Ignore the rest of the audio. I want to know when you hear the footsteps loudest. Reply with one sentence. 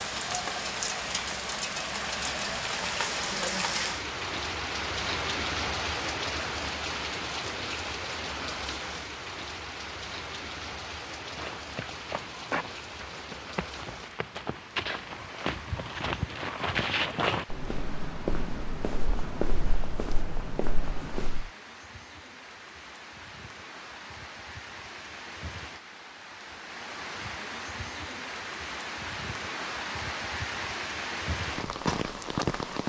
The volume of the footsteps peaks at 17 seconds.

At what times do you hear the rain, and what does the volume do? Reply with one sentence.
You can hear the rain from 0.0 to 32.8 s, getting quieter then louder.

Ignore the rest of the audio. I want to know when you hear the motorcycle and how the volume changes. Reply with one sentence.
You can't hear the motorcycle here.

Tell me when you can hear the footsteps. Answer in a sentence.
You can hear the footsteps from 11.2 to 21.4 s.